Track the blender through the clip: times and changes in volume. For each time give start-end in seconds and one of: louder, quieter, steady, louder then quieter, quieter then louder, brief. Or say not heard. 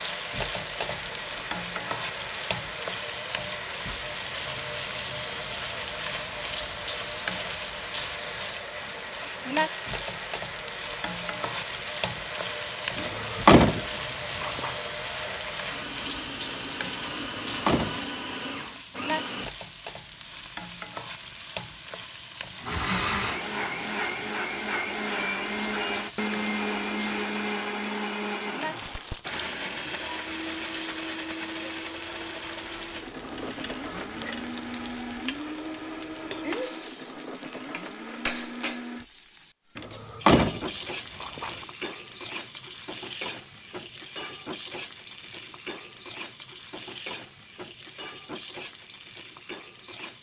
0.0-19.5 steady
22.6-39.0 quieter.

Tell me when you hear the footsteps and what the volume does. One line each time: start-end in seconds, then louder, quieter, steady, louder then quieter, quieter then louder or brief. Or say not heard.
not heard.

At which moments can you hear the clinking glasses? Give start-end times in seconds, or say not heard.
not heard.